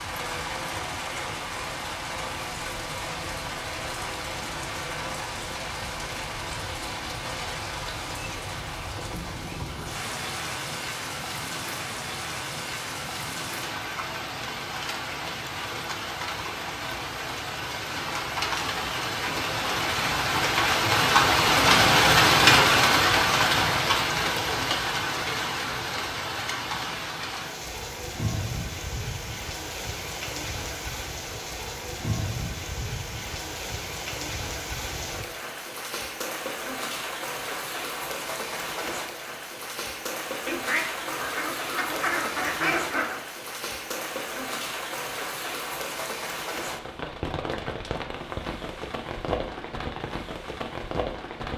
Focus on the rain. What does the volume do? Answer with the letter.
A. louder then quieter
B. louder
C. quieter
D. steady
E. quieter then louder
A.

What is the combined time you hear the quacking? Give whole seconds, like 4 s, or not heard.
3 s.